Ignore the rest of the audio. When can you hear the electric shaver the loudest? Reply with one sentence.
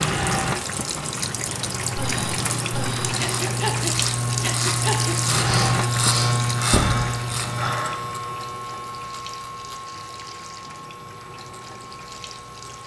The volume of the electric shaver peaks at 6 seconds.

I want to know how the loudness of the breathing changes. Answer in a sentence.
The loudness of the breathing goes up.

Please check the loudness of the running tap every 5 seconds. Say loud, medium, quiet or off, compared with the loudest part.
loud, loud, quiet.